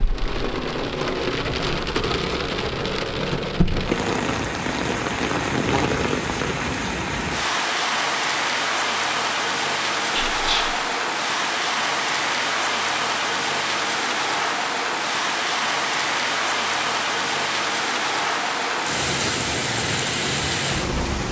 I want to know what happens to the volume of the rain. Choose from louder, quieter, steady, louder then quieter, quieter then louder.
steady.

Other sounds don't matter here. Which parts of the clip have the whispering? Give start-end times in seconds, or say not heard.
10.1-10.8.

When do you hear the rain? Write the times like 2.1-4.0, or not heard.
0.0-21.2.